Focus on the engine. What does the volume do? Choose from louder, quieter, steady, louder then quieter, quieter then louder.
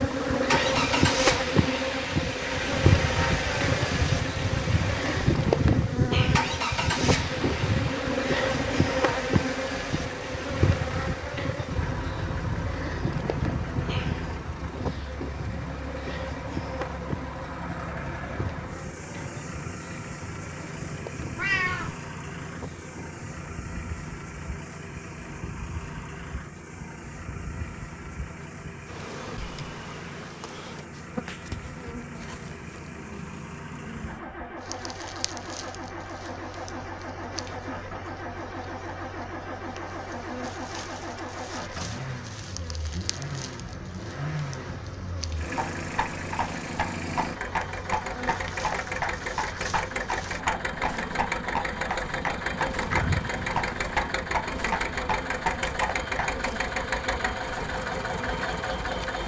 quieter then louder.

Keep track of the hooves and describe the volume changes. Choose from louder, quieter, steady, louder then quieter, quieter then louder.
steady.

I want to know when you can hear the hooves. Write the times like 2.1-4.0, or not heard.
45.5-56.4.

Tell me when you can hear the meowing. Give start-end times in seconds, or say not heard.
21.4-21.9, 52.9-53.7.